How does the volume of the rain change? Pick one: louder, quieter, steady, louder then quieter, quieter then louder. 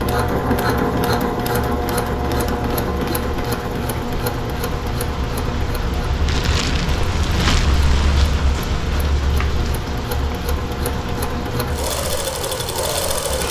louder then quieter.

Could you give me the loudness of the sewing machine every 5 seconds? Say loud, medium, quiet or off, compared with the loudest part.
loud, medium, loud.